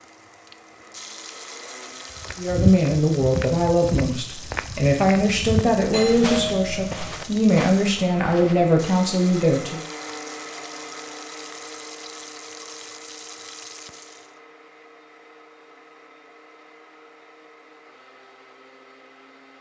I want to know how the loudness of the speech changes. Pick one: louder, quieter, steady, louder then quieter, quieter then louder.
steady.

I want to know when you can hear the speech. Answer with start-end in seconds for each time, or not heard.
2.4-9.8.